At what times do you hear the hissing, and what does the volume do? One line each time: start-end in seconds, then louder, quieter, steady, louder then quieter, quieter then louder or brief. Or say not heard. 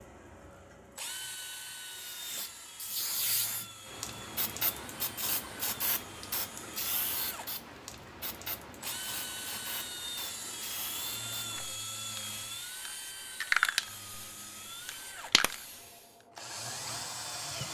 1.9-16.1 quieter then louder.